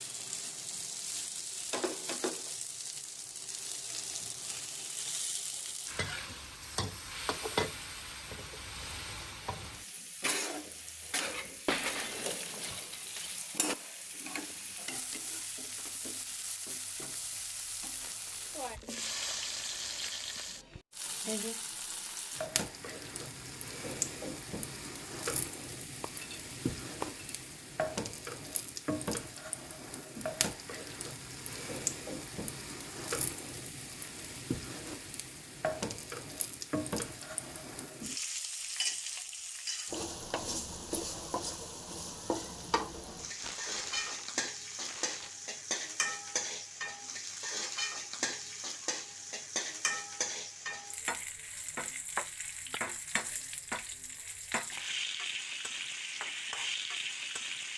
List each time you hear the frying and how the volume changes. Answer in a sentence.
You can hear the frying from 0.0 to 57.7 s, at a steady volume.